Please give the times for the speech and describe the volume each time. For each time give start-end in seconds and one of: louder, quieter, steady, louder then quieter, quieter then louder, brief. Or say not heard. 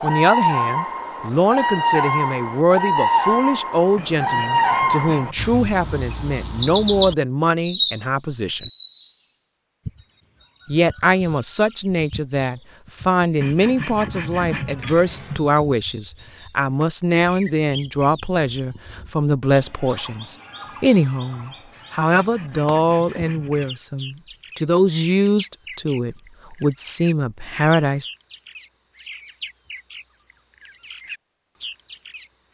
0.0-8.7 steady
10.7-28.1 steady.